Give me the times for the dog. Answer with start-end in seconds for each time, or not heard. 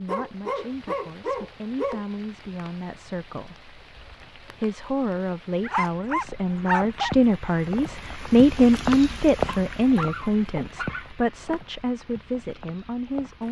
0.1-2.0, 5.6-7.2, 9.4-11.6.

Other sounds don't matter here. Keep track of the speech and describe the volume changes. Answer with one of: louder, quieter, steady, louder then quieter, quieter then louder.
louder then quieter.